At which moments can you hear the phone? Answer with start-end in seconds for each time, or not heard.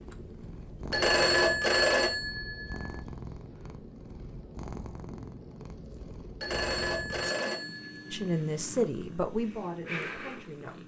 0.9-3.0, 6.4-8.3.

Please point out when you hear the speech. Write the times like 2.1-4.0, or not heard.
8.1-10.8.